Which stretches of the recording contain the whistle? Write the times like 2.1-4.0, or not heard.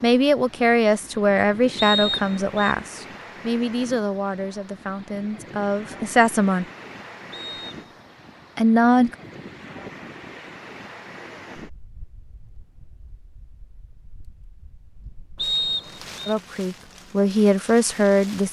1.8-2.8, 7.3-7.8, 15.3-16.4.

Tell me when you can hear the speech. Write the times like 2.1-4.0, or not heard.
0.0-6.7, 8.6-9.2, 16.2-18.4.